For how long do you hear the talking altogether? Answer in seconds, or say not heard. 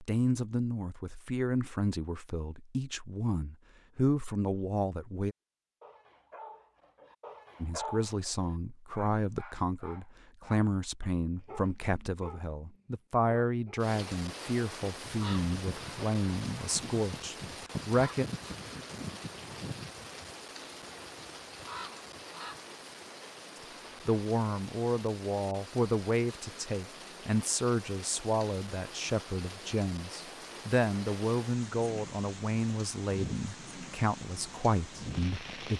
28 s.